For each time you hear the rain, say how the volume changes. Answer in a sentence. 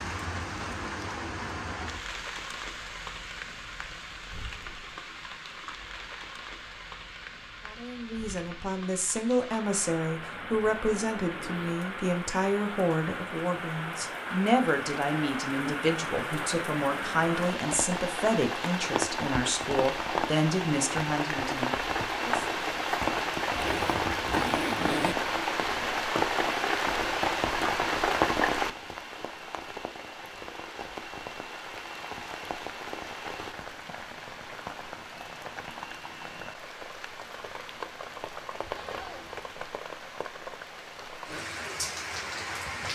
You can hear the rain from 0.0 to 42.8 s, getting louder then quieter.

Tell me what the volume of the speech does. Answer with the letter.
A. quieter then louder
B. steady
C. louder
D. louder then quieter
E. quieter
B.